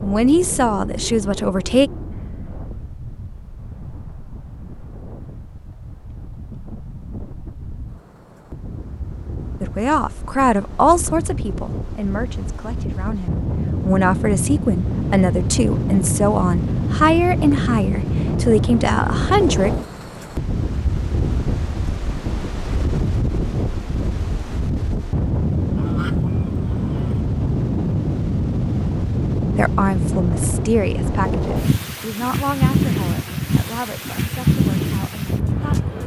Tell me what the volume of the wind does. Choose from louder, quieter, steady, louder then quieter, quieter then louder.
louder.